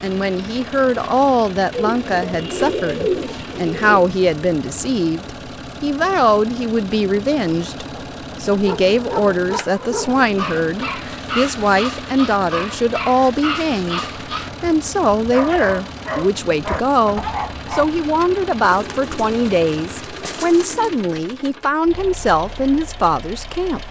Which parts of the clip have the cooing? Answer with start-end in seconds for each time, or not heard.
1.7-4.0, 18.6-21.0.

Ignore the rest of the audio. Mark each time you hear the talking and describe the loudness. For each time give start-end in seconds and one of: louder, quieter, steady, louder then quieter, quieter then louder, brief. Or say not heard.
0.0-23.8 steady.